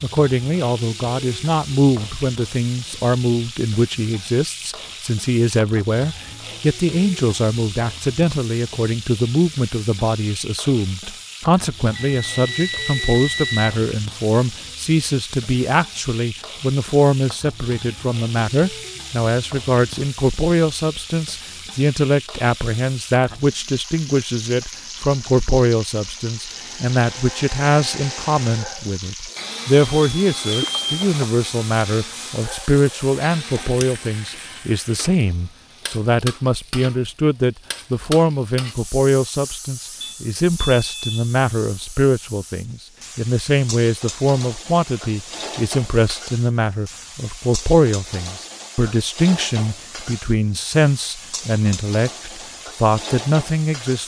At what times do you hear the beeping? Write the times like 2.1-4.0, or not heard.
11.9-13.8, 29.9-31.2, 40.0-41.4.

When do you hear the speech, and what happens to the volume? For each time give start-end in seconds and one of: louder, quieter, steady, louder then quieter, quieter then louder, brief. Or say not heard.
0.0-54.0 steady.